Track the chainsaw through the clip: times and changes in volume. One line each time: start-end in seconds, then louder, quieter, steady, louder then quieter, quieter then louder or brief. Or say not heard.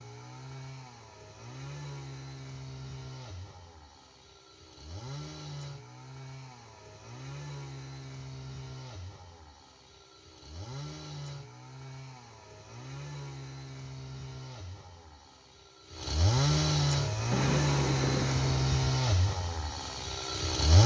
0.0-20.8 louder.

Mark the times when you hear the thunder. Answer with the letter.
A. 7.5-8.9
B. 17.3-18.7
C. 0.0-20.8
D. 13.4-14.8
B.